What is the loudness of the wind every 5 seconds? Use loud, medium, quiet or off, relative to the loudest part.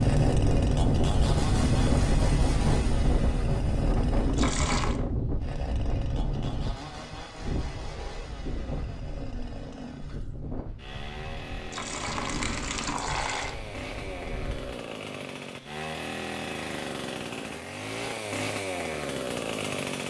loud, medium, quiet, off.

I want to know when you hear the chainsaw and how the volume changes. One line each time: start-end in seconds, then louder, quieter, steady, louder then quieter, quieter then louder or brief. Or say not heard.
0.0-20.0 quieter then louder.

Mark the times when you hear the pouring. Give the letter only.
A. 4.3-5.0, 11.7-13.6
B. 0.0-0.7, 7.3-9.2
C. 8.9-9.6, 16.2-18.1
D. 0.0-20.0
A.